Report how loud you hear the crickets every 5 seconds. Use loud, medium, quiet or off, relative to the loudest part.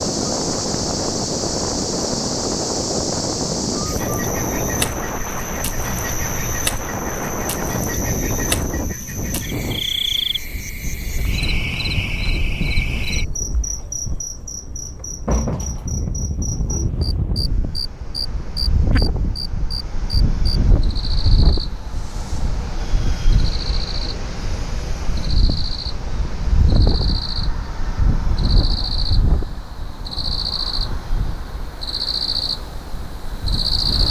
loud, loud, loud, loud, medium, medium, loud.